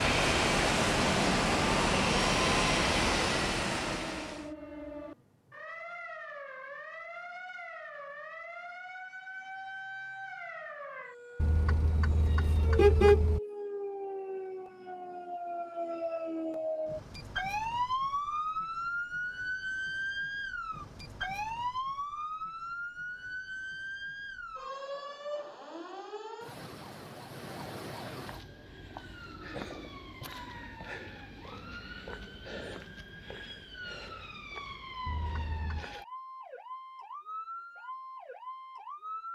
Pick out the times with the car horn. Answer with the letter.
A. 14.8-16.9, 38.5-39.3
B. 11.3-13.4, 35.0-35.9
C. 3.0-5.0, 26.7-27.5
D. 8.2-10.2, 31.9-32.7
B.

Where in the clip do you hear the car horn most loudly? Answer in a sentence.
The volume of the car horn peaks at 13 seconds.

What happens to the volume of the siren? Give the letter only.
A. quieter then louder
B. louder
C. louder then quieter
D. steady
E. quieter
C.